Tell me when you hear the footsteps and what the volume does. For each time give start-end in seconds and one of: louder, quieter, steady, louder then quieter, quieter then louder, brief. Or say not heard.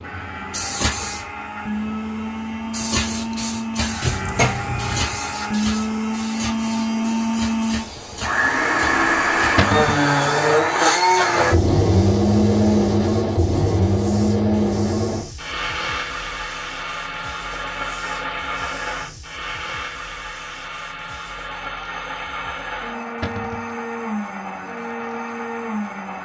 not heard.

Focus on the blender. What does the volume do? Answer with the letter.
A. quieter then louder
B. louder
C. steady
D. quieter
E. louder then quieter
E.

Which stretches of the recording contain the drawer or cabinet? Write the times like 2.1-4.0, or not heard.
4.0-5.2, 9.6-10.1, 23.2-23.7.